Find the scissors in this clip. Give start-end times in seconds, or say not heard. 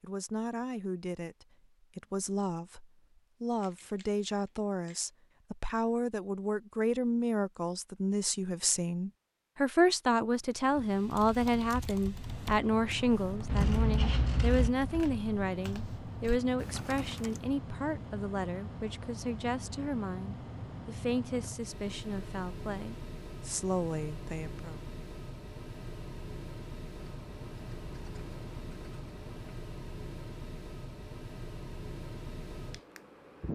3.6-5.0, 13.4-14.7, 26.9-29.3.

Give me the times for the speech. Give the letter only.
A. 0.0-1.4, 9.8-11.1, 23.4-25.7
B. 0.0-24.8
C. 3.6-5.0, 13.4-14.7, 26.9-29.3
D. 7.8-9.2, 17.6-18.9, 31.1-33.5
B.